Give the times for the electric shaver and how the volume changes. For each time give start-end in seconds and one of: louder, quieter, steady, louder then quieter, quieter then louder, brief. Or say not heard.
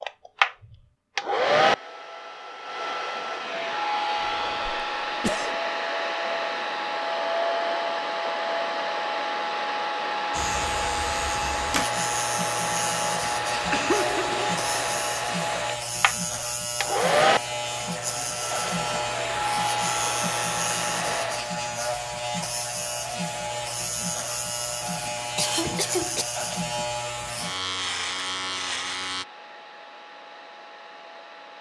10.3-29.2 steady.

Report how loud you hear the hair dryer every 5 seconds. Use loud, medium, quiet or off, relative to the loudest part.
loud, loud, loud, loud, medium, quiet, quiet.